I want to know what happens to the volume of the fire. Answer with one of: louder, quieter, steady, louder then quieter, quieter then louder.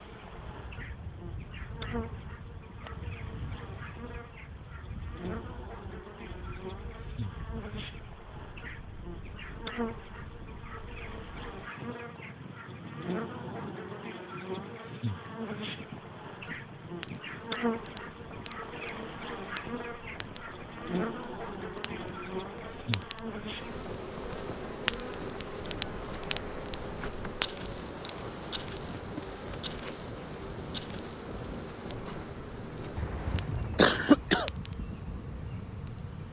louder then quieter.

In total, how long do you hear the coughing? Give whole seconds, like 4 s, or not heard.
2 s.